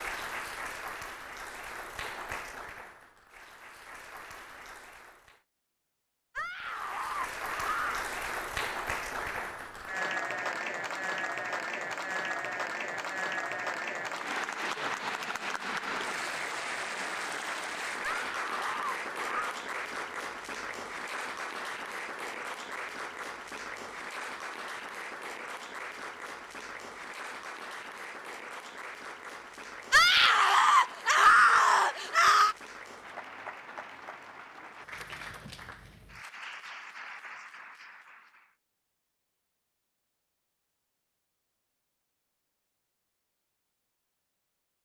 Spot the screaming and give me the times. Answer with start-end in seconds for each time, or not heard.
6.3-8.1, 18.0-19.6, 29.9-32.5.